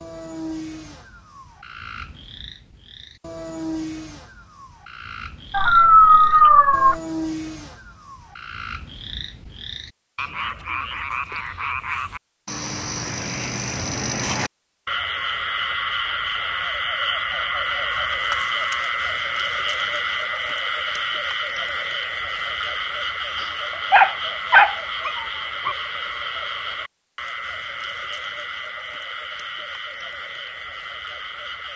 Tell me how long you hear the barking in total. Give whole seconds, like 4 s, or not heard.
3 s.